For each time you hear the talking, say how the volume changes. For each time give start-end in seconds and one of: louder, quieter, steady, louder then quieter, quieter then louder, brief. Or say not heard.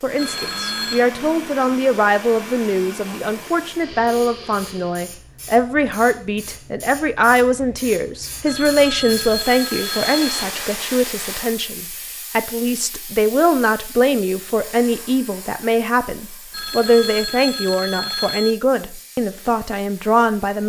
0.0-20.6 steady.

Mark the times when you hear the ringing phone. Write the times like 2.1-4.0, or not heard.
0.1-1.1, 8.4-10.4, 16.5-18.6.